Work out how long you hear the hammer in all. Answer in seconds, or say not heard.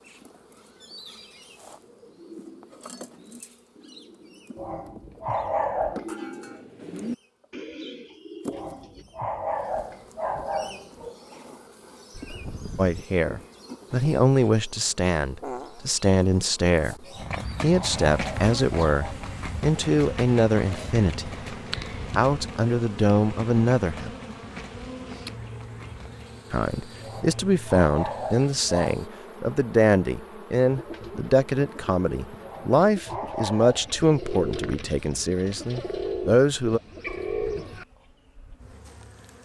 not heard.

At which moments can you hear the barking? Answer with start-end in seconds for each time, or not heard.
4.5-6.0, 8.5-11.1, 17.0-19.1, 27.0-29.0, 32.4-34.0.